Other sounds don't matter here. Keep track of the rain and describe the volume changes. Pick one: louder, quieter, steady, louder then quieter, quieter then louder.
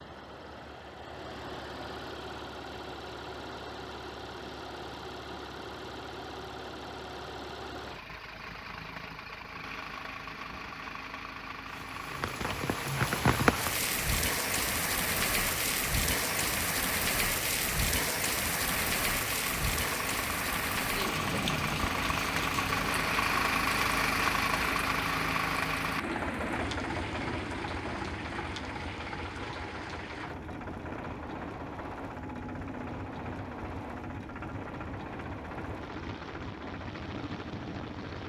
quieter.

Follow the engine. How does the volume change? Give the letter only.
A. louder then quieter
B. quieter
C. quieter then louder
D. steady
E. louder
A.